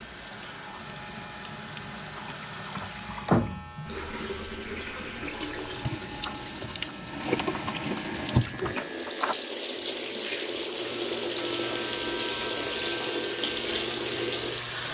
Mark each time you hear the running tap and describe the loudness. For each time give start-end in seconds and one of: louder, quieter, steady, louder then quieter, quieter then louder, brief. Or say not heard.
0.0-14.8 louder.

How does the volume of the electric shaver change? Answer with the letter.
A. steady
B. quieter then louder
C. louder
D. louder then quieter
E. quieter
C.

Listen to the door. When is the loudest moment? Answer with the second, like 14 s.
3 s.